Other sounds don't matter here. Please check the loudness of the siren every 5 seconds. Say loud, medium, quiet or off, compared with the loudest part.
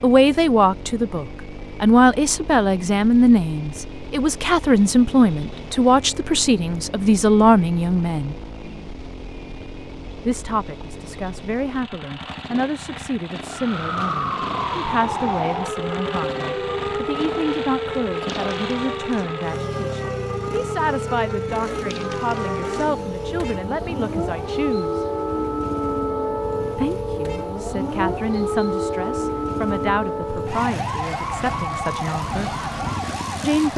off, off, loud, loud, loud, loud, loud.